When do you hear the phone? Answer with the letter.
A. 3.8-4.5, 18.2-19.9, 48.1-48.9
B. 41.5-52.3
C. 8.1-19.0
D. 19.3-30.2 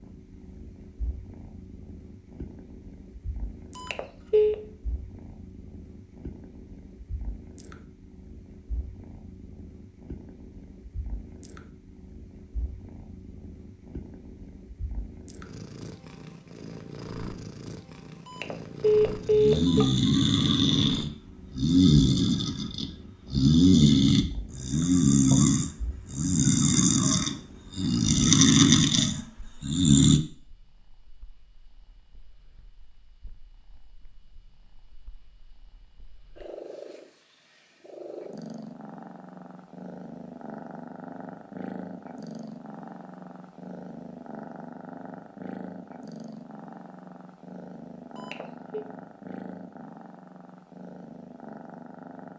A.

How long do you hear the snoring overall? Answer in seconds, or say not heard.
11 s.